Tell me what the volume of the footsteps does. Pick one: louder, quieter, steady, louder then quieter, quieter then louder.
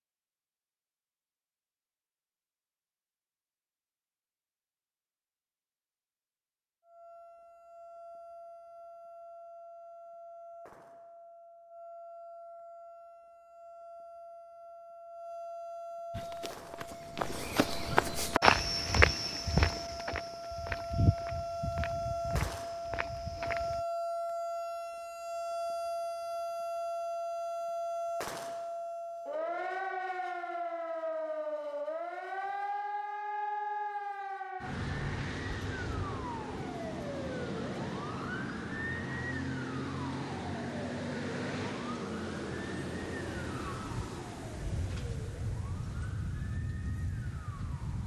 louder then quieter.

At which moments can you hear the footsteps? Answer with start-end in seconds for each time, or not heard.
16.1-23.8.